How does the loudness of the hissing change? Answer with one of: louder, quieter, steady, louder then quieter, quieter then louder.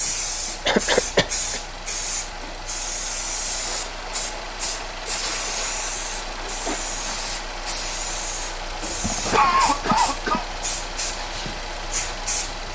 steady.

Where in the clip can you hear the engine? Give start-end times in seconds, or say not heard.
0.0-12.6.